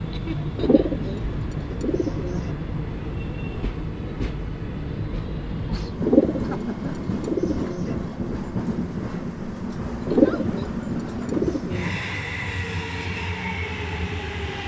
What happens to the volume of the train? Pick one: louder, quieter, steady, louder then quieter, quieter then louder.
steady.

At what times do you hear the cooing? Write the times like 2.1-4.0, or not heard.
0.6-2.5, 6.0-8.0, 10.1-12.0.